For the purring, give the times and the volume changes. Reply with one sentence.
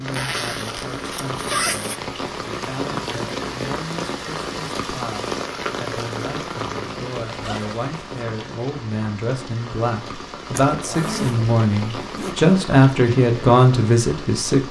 The purring can't be heard in this clip.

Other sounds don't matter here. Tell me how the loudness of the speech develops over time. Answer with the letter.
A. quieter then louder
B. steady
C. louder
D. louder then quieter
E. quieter
C.